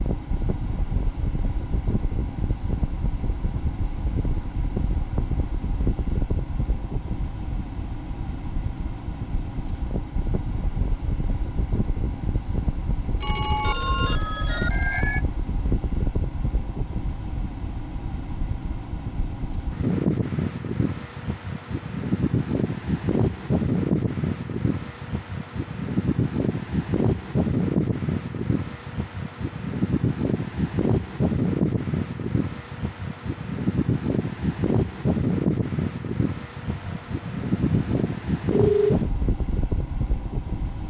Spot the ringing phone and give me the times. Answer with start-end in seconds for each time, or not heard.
13.2-15.2, 36.7-39.0.